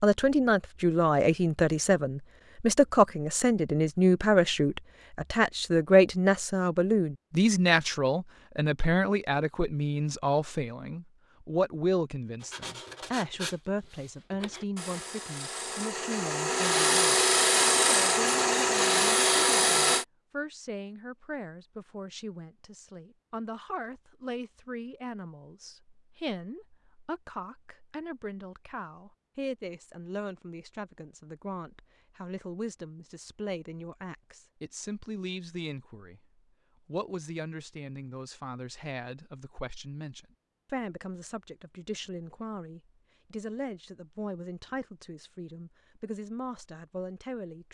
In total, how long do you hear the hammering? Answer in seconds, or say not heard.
not heard.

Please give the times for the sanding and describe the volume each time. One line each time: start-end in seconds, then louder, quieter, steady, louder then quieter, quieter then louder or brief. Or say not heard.
12.4-20.1 louder.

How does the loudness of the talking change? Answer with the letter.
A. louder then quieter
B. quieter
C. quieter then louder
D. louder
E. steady
B.